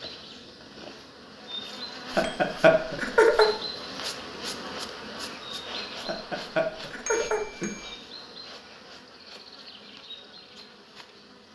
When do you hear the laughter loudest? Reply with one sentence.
The volume of the laughter peaks at 3 seconds.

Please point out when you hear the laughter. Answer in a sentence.
The laughter can be heard from 2.1 to 3.5 s and from 6.0 to 7.8 s.